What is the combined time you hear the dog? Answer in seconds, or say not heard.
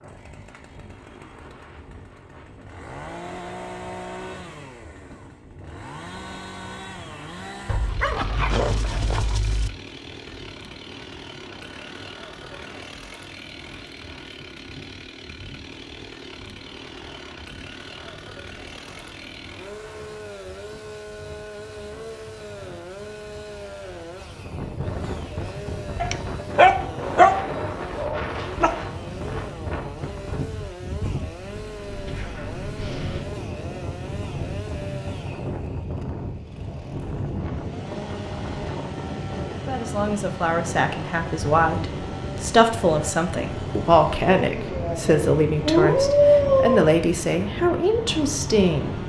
7 s.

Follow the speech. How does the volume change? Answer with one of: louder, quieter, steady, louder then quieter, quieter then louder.
steady.